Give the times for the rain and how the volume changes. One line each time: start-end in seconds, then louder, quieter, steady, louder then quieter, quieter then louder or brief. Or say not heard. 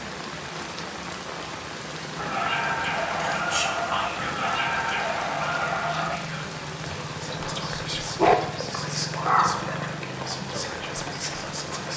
0.0-11.9 steady.